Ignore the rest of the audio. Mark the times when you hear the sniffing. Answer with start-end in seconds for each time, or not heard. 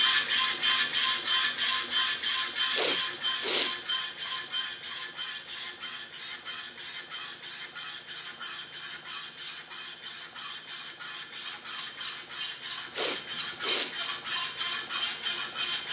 2.7-3.8, 12.9-13.9.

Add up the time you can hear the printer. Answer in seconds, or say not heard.
16 s.